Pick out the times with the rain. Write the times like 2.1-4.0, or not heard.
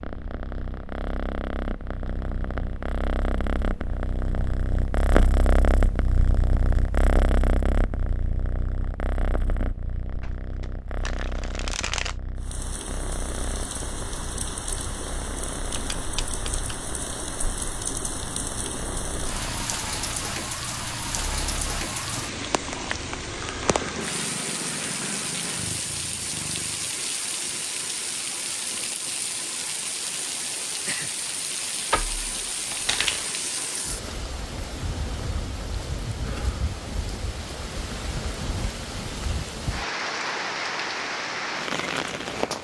12.3-42.5.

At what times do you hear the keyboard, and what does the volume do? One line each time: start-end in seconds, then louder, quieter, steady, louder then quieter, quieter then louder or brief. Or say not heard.
not heard.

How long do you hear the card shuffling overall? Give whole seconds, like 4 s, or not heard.
4 s.